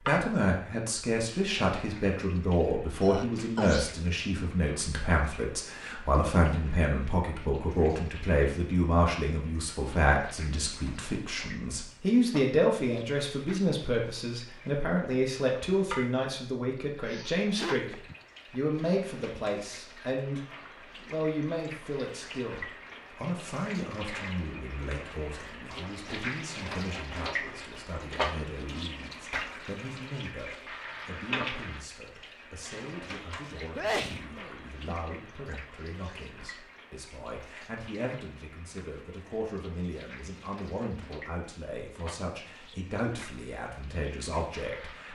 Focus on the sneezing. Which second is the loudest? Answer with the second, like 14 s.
34 s.